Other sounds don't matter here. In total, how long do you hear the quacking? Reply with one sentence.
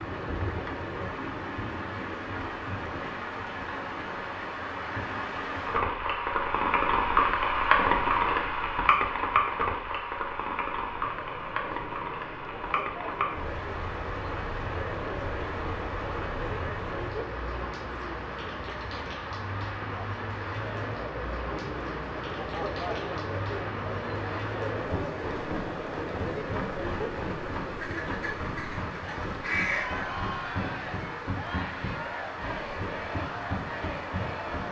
You can hear the quacking for 2 seconds altogether.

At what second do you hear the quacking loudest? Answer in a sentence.
The volume of the quacking peaks at 30 seconds.